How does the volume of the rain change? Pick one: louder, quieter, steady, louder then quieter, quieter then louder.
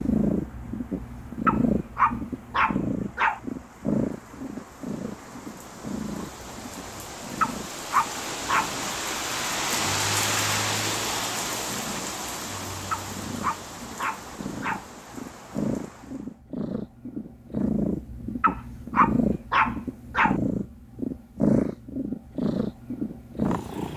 louder then quieter.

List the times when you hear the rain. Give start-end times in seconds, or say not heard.
0.0-16.4.